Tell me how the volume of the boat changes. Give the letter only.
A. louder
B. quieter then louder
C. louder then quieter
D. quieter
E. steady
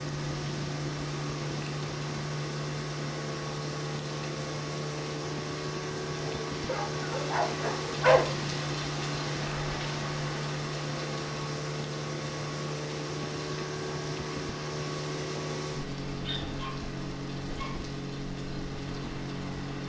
E.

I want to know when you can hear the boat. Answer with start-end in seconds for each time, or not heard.
0.0-19.8.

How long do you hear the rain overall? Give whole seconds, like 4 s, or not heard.
20 s.